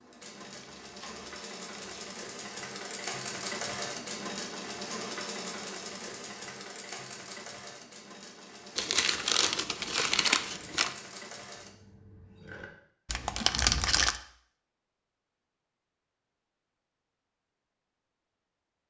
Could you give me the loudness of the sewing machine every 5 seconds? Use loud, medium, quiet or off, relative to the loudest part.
loud, loud, medium, off.